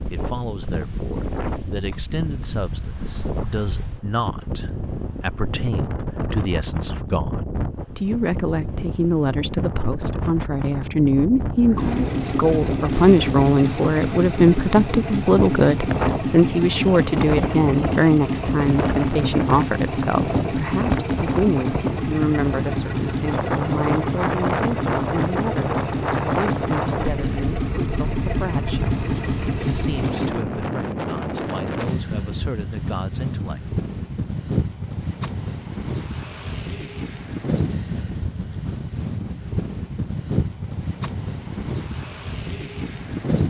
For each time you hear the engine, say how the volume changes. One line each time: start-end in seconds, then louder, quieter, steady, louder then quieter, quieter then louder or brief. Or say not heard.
11.8-30.4 steady.